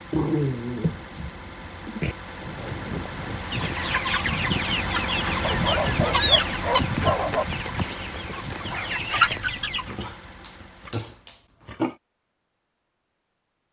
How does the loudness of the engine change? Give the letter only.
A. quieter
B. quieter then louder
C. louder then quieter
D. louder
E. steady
C.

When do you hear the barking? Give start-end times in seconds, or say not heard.
0.1-2.1, 5.5-7.5, 9.4-11.9.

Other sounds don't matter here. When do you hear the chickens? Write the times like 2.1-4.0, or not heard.
3.4-9.9.